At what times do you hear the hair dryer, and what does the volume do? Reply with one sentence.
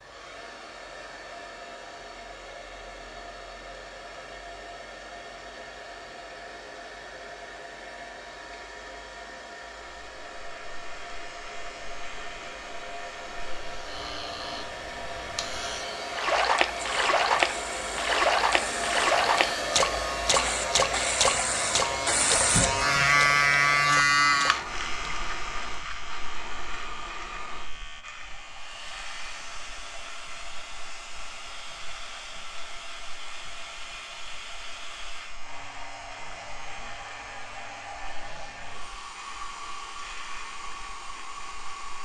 The hair dryer can be heard from 0.0 to 42.0 s, getting louder then quieter.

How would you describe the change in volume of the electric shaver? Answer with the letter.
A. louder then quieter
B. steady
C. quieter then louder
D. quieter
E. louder
A.